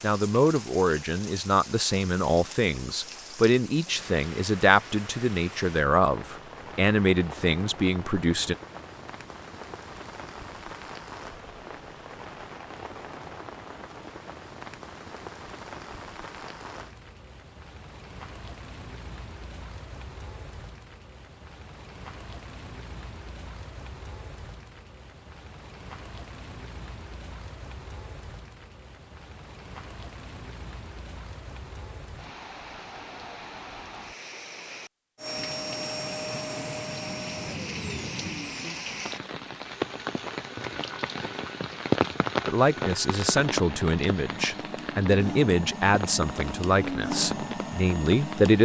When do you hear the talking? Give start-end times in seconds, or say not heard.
0.0-8.6, 42.5-48.6.